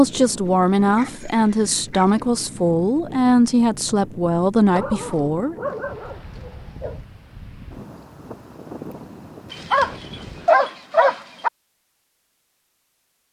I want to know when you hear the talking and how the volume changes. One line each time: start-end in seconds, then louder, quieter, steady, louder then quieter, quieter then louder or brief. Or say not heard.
0.0-5.5 steady.